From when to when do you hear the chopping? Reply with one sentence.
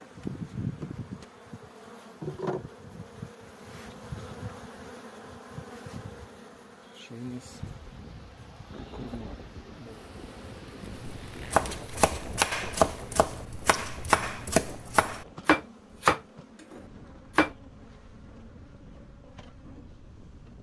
The chopping can be heard from 10.9 to 17.5 s.